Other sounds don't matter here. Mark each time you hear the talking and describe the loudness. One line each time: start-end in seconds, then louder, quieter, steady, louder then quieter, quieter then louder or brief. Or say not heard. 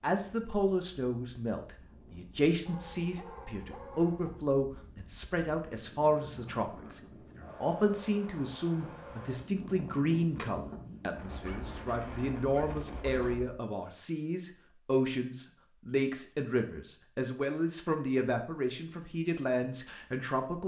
0.0-20.6 steady.